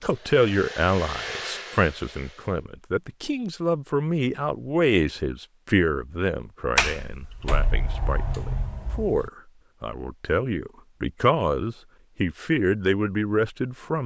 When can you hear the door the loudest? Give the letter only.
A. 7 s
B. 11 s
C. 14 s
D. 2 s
A.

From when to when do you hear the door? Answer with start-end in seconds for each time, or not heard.
6.8-9.3.